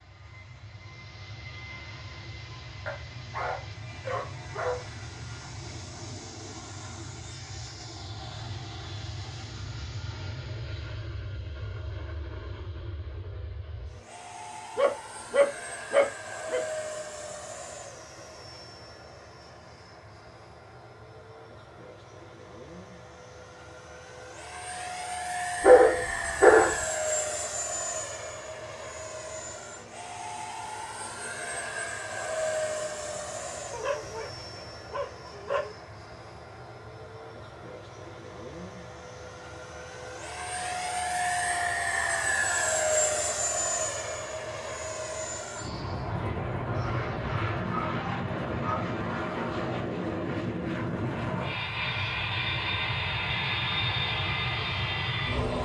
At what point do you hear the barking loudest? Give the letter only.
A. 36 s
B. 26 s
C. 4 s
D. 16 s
B.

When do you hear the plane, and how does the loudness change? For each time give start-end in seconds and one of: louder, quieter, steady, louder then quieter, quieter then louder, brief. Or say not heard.
0.0-55.6 louder.